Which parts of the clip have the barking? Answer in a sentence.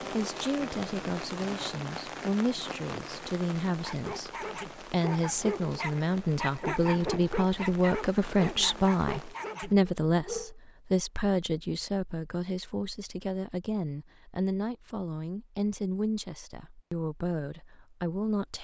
You can hear the barking from 3.7 to 10.6 s.